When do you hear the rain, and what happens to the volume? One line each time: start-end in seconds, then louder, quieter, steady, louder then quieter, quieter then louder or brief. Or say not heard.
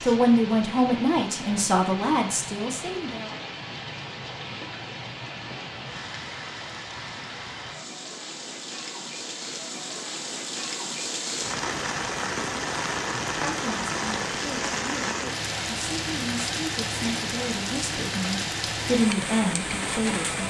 0.0-20.4 louder.